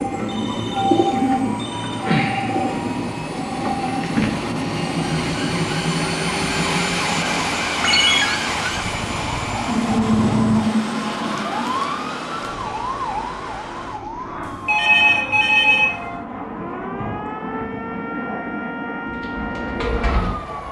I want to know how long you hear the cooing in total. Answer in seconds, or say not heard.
6 s.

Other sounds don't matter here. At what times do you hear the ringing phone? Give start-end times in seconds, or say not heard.
0.1-2.0, 7.8-8.2, 14.7-15.9.